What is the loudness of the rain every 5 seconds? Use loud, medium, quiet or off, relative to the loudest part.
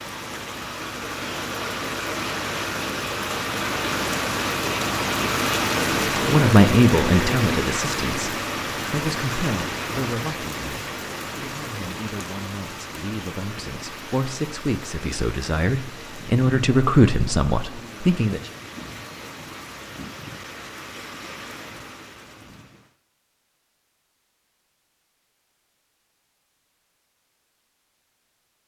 loud, loud, medium, quiet, quiet, off.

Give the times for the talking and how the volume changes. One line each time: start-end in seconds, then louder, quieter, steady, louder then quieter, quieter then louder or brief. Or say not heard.
6.2-18.4 quieter then louder.